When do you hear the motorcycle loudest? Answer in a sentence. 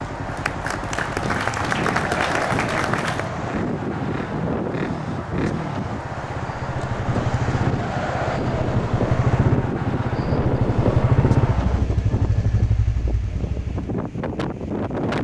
The volume of the motorcycle peaks at 11 seconds.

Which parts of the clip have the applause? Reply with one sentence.
The applause can be heard from 0.2 to 3.3 s.